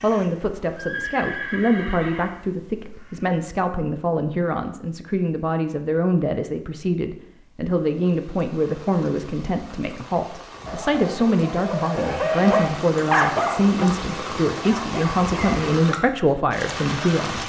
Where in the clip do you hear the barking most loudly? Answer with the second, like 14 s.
13 s.